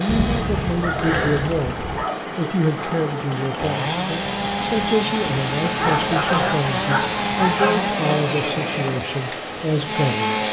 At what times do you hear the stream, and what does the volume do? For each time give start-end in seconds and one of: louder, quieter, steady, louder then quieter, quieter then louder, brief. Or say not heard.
0.0-10.4 steady.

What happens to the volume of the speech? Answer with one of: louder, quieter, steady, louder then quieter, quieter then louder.
steady.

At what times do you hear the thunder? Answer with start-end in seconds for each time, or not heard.
0.1-2.0.